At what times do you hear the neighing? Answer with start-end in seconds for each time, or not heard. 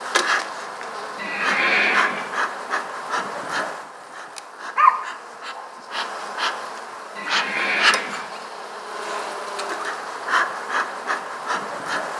1.1-2.3, 7.2-8.2.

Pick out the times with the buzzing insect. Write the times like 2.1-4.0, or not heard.
0.0-12.1.